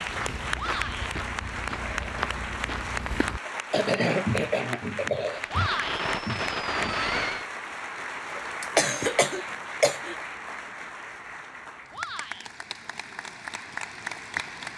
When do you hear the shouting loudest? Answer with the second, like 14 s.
6 s.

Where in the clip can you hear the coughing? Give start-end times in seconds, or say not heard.
3.5-5.4, 8.3-10.2.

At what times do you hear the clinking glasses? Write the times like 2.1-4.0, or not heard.
not heard.